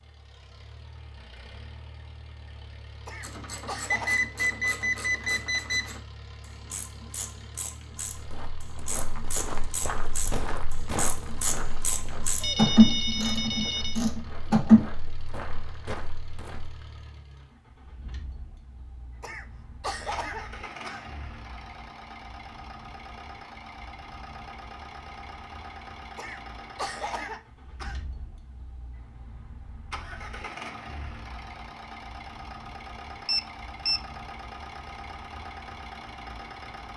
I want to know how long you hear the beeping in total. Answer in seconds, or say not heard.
4 s.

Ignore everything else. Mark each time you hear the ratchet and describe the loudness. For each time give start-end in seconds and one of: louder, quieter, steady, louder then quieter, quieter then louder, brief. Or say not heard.
3.2-14.8 louder.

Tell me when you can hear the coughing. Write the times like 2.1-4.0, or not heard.
3.0-4.2, 19.2-21.1, 26.1-28.0.